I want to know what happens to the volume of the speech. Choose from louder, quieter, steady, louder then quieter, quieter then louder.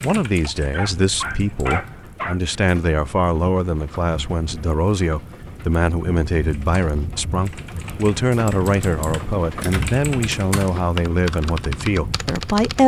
steady.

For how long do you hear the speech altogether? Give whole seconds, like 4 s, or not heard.
13 s.